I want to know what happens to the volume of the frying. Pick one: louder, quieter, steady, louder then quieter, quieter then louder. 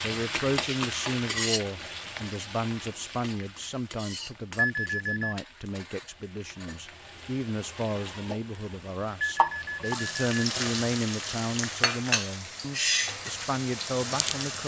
quieter then louder.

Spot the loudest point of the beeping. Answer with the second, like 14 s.
5 s.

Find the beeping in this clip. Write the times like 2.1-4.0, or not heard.
4.5-5.4, 9.2-10.2.